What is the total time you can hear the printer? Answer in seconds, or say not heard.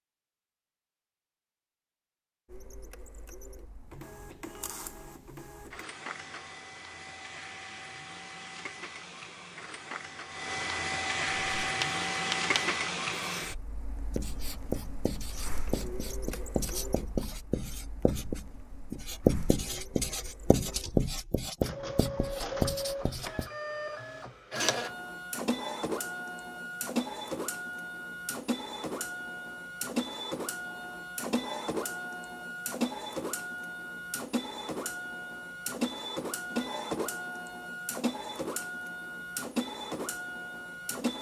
39 s.